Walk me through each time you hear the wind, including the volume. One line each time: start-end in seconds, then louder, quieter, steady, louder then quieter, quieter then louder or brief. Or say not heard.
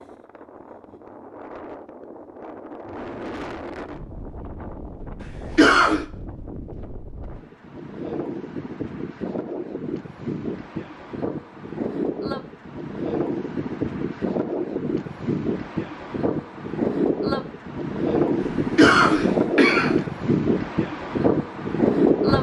0.0-22.3 louder.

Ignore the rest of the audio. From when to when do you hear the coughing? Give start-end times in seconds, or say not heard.
5.2-6.0, 18.4-20.0.